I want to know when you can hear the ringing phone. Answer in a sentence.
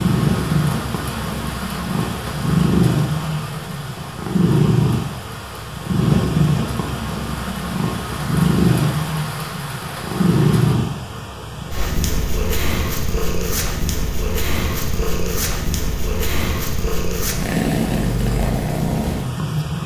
The ringing phone can't be heard in this clip.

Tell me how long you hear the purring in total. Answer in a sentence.
The purring can be heard for 20 seconds in total.